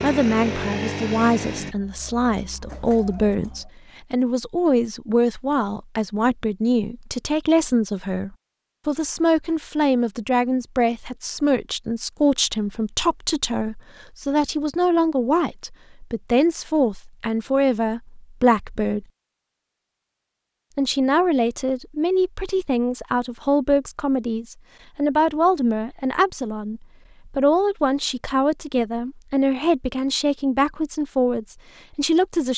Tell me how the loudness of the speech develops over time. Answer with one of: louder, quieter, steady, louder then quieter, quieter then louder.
steady.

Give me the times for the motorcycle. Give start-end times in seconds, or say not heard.
0.0-1.8.